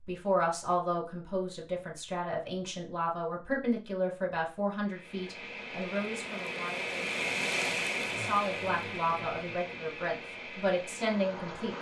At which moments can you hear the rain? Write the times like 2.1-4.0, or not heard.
4.8-11.7.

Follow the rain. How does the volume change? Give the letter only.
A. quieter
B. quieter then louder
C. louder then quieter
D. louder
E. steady
C.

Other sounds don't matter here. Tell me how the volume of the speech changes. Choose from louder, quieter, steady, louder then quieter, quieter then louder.
steady.